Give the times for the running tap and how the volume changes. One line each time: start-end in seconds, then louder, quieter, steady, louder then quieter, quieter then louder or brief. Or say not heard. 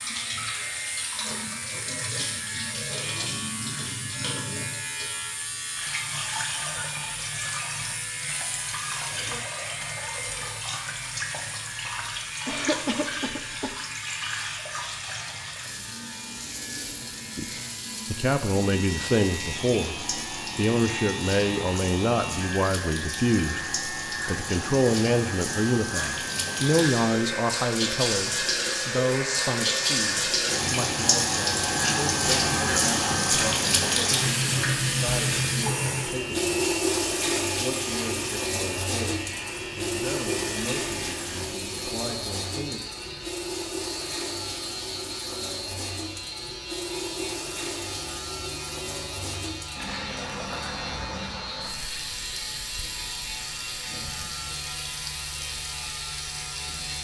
0.0-56.9 louder then quieter.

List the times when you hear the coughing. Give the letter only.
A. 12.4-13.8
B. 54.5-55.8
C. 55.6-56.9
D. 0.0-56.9
A.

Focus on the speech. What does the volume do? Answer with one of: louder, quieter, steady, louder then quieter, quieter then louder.
quieter.